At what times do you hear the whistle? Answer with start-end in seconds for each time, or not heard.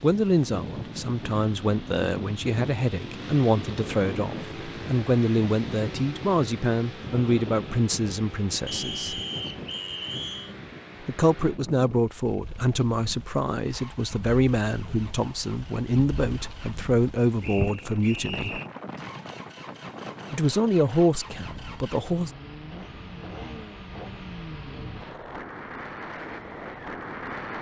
8.7-10.6, 17.4-18.7.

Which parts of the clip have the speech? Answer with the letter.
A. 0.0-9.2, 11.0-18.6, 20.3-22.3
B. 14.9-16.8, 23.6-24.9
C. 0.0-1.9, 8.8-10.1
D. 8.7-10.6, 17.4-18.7
A.